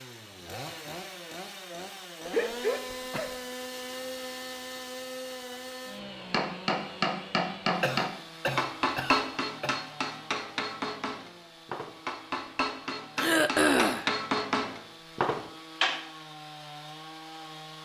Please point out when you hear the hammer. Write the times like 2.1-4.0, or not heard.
6.3-16.0.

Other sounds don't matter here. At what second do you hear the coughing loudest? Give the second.
14 s.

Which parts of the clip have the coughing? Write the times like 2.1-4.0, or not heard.
2.2-3.4, 7.8-9.8, 13.2-14.1.